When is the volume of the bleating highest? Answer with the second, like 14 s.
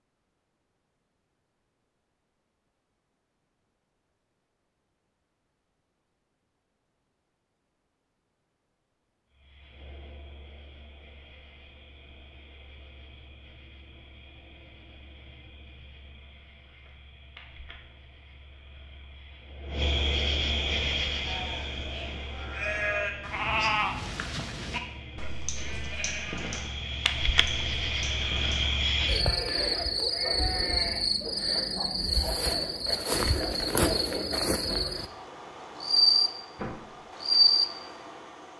24 s.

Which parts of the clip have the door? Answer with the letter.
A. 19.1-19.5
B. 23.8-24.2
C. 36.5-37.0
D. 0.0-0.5
C.